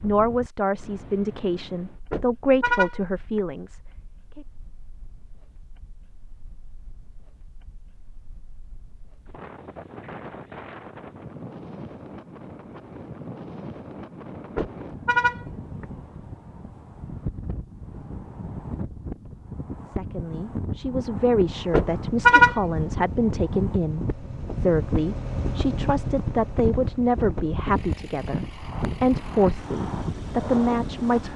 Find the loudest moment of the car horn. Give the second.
22 s.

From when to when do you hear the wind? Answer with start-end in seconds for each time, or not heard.
0.0-31.3.